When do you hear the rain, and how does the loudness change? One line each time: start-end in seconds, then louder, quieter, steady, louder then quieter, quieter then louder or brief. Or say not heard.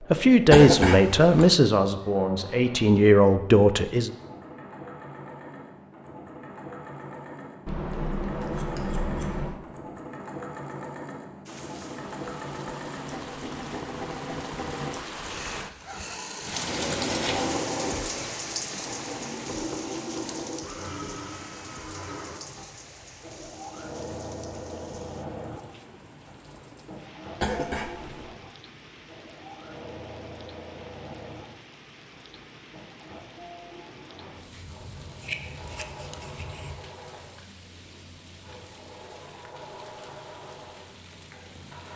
11.4-41.9 quieter.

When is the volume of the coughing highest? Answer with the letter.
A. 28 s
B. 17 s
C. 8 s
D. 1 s
D.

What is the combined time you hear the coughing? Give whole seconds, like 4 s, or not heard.
2 s.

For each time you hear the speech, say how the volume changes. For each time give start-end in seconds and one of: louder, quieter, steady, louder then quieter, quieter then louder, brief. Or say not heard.
0.0-4.1 quieter then louder.